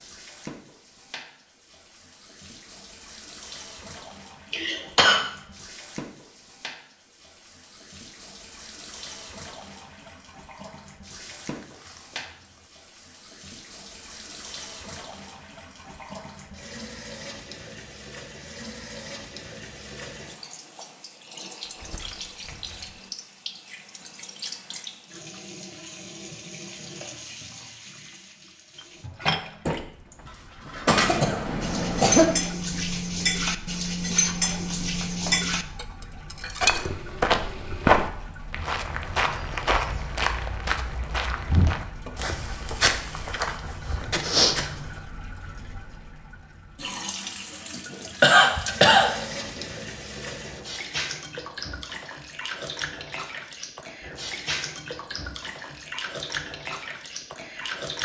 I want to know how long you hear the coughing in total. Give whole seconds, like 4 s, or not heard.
4 s.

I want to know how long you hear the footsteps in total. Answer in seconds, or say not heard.
8 s.